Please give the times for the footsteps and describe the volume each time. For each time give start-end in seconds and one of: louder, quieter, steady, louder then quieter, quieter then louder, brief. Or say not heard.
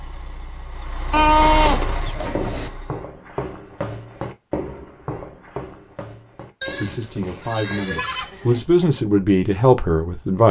1.6-8.0 quieter.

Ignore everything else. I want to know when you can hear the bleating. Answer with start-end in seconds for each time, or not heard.
1.1-2.7, 6.6-8.6.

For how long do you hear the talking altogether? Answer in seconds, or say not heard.
4 s.